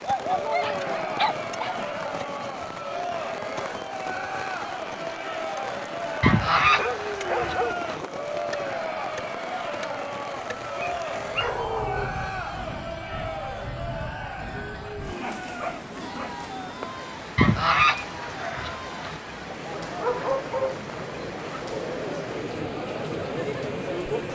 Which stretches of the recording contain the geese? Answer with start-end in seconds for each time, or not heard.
6.2-8.1, 17.4-19.2.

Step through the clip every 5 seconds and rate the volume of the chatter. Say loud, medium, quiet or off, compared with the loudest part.
loud, loud, loud, medium, loud.